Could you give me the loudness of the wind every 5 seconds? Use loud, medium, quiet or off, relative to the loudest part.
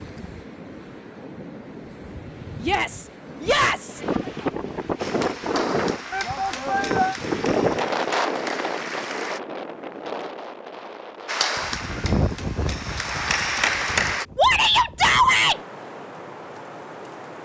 medium, loud, medium, quiet.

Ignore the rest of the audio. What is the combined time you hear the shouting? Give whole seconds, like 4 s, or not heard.
4 s.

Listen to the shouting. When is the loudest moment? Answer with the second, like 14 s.
15 s.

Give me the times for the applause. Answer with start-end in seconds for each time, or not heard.
5.0-9.4, 11.2-14.2.